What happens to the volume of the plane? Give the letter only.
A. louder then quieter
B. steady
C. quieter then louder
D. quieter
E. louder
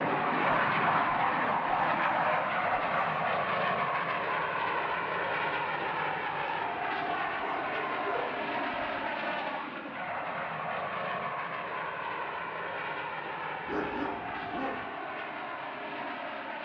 D.